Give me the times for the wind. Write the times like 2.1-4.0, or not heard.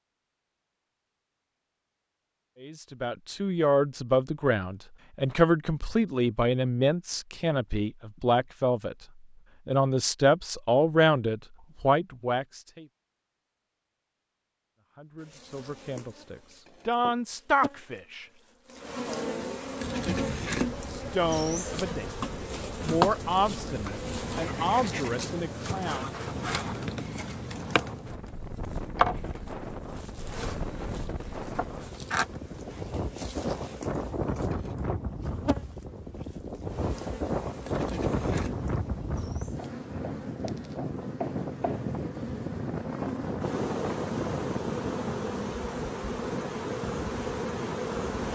19.8-48.2.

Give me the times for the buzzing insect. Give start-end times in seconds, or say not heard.
15.2-48.2.